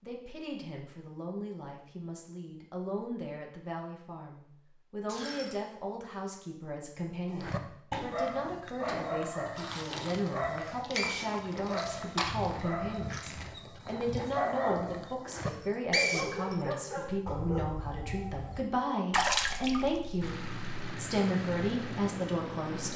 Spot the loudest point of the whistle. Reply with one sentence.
The loudest moment of the whistle is at 16 seconds.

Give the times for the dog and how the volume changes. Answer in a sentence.
You can hear the dog from 7.3 to 18.6 s, at a steady volume.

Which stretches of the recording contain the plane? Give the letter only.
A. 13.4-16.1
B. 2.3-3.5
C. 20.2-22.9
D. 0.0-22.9
C.